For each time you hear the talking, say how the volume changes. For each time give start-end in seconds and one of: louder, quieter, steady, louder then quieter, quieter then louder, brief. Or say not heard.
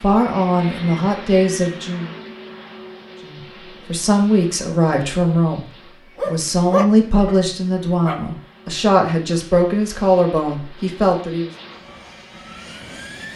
0.0-2.1 brief
3.2-11.5 steady.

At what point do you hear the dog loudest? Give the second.
7 s.